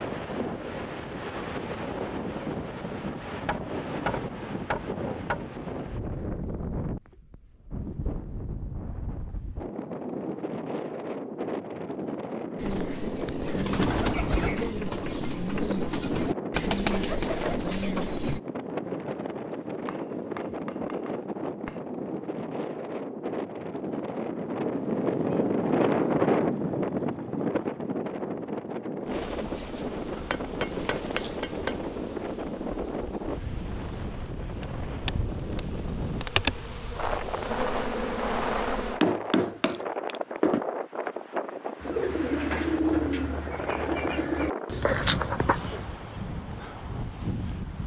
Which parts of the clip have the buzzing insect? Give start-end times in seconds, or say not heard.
29.1-39.0.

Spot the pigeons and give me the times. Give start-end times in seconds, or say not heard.
12.6-18.4, 41.8-45.9.